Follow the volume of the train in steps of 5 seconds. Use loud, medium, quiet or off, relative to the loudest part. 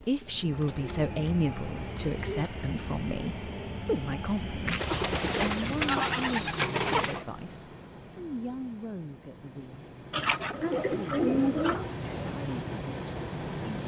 loud, medium, loud.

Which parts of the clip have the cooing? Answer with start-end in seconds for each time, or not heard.
0.2-2.4, 4.7-7.2, 10.1-11.9.